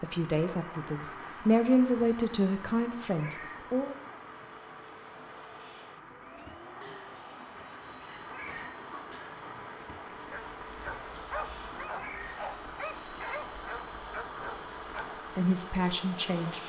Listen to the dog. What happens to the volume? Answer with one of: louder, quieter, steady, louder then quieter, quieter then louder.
louder.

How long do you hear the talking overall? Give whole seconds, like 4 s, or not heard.
5 s.